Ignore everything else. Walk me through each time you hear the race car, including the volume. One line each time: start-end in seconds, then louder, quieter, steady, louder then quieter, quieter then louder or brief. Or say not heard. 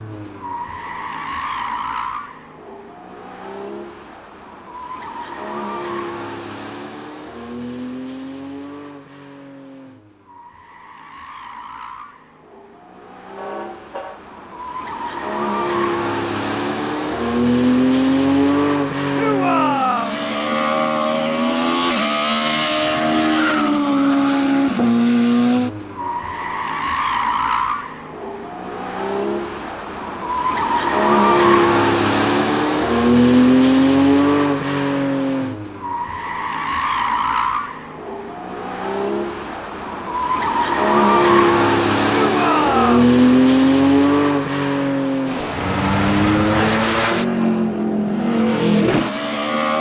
0.0-49.7 louder.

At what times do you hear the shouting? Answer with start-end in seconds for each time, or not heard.
19.1-20.2, 42.0-43.1.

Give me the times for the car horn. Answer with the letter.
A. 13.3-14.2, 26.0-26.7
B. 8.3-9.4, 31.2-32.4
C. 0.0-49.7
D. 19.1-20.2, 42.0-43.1
A.